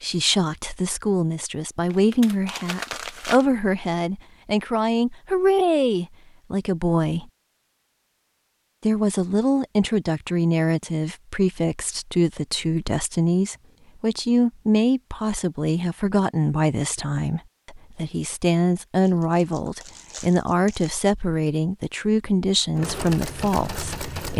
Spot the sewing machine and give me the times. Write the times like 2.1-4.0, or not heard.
22.8-24.3.